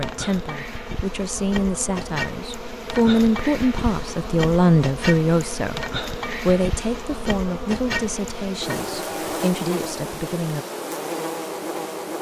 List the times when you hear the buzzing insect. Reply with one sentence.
The buzzing insect can be heard from 0.0 to 12.1 s.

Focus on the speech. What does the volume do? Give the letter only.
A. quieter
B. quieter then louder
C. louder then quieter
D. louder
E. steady
C.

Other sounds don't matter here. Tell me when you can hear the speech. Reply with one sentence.
You can hear the speech from 0.0 to 10.7 s.